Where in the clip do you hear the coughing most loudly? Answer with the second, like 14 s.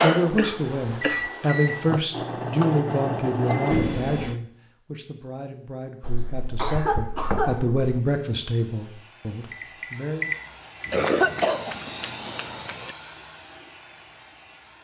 11 s.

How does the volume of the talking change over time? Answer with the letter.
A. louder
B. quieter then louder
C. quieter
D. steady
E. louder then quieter
B.